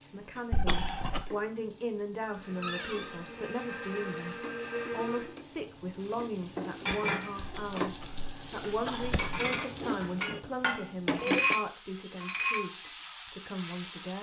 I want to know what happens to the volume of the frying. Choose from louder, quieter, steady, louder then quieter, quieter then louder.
louder.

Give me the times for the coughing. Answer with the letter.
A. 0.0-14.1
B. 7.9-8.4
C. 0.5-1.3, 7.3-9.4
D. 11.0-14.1
C.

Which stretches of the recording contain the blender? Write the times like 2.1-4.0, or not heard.
2.2-5.3.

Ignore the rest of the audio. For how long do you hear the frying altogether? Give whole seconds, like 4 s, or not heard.
14 s.